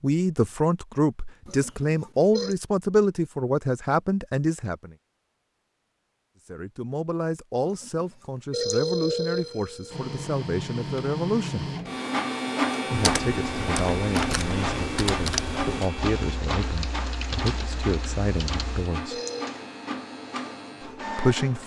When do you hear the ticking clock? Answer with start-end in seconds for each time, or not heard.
not heard.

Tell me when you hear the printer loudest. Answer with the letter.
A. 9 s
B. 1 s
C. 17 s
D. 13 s
D.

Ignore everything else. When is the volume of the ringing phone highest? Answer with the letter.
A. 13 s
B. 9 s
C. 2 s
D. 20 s
B.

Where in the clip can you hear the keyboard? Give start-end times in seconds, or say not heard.
12.9-18.9.